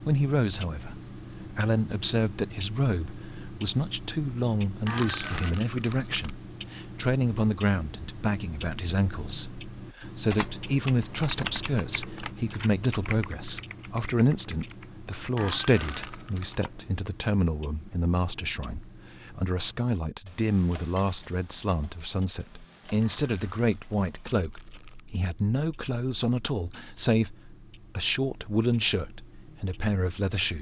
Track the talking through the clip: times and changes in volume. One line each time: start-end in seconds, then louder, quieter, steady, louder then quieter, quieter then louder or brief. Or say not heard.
0.0-30.5 steady.